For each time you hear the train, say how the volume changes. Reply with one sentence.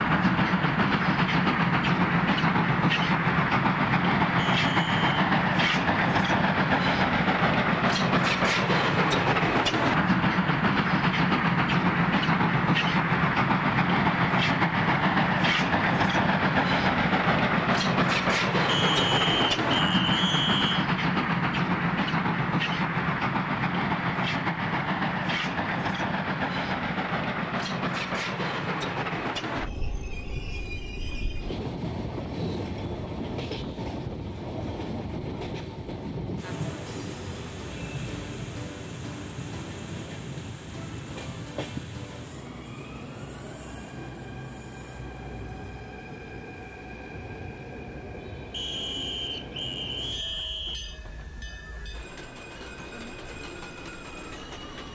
You can hear the train from 0.0 to 54.9 s, getting quieter.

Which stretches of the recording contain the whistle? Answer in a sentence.
The whistle can be heard from 4.3 to 5.2 s, from 18.6 to 20.9 s and from 48.5 to 51.0 s.